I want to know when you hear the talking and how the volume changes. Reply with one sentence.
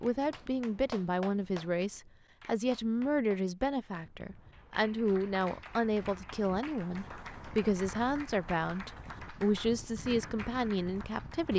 You can hear the talking from 0.0 to 11.5 s, at a steady volume.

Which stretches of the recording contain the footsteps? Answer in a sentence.
You can't hear the footsteps here.